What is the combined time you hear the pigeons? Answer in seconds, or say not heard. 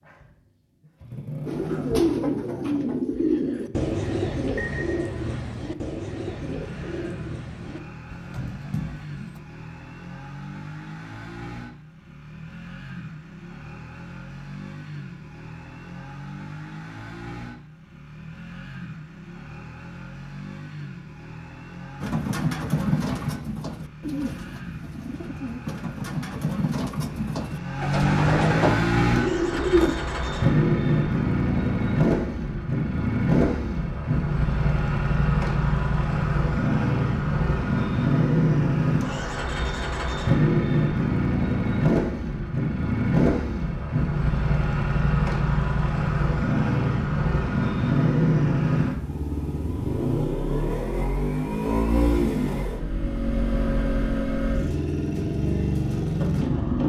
16 s.